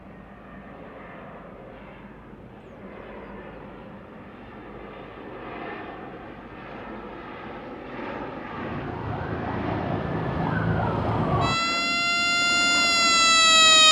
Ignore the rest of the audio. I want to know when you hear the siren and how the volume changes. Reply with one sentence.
The siren can be heard from 8.4 to 13.8 s, getting louder.